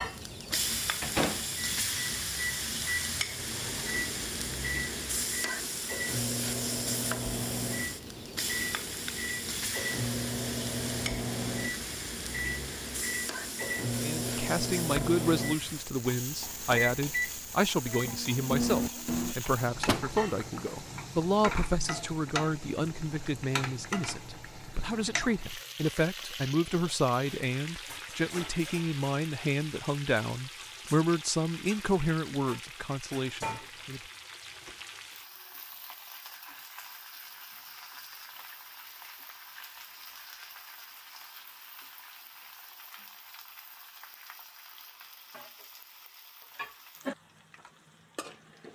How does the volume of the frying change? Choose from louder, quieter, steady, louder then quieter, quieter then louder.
quieter.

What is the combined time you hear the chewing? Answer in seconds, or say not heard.
not heard.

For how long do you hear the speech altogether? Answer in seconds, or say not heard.
20 s.